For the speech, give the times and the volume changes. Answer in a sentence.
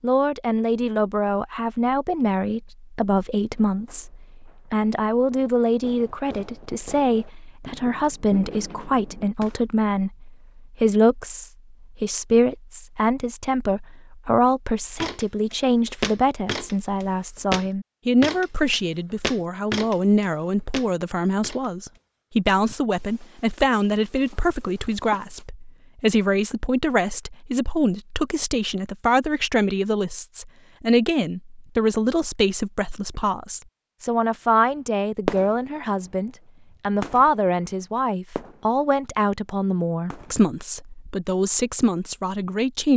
You can hear the speech from 0.0 to 42.9 s, at a steady volume.